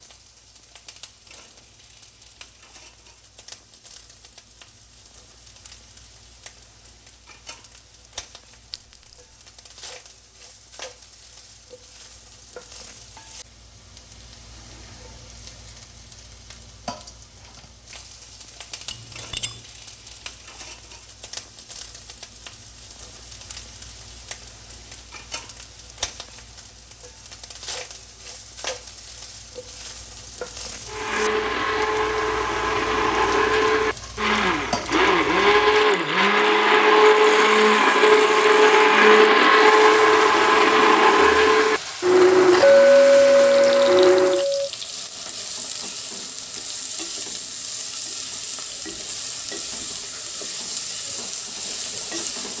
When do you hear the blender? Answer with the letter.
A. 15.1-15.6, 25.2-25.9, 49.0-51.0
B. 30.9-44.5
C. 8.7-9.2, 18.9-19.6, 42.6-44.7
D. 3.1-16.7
B.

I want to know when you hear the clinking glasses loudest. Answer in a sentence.
The loudest moment of the clinking glasses is at 43 seconds.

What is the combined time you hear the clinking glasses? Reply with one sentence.
The clinking glasses can be heard for 3 seconds in total.